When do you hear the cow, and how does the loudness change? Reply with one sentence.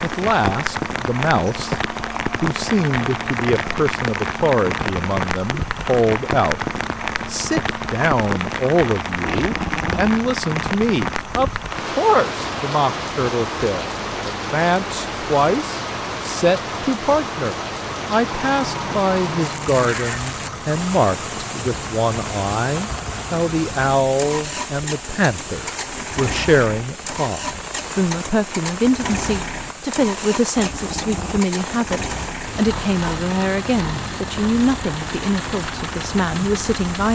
You can't hear the cow here.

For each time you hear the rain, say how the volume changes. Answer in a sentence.
You can hear the rain from 0.0 to 37.1 s, getting quieter.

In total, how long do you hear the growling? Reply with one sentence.
The growling can be heard for 4 seconds in total.